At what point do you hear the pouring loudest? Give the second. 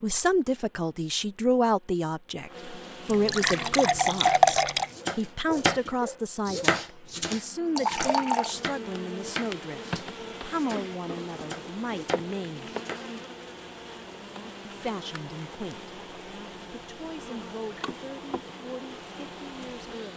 4 s.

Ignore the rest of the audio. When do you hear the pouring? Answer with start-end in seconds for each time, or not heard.
3.0-4.9, 7.8-8.5, 17.6-18.0.